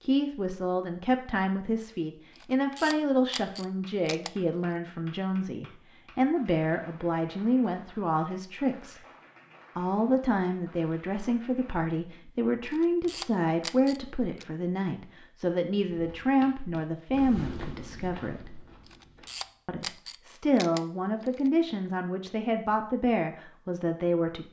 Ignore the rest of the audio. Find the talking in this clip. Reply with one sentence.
The talking can be heard from 0.0 to 9.0 s, from 9.8 to 18.6 s and from 19.6 to 24.4 s.